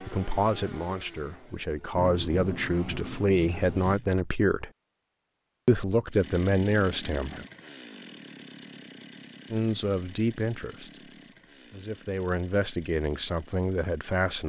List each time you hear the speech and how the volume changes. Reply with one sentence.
You can hear the speech from 0.0 to 4.7 s, getting quieter then louder; briefly from 5.7 to 7.5 s; and from 9.5 to 14.4 s, getting quieter then louder.